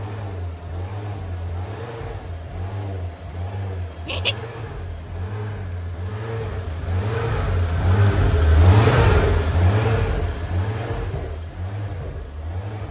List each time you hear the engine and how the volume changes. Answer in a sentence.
The engine can be heard from 0.0 to 12.8 s, getting louder then quieter.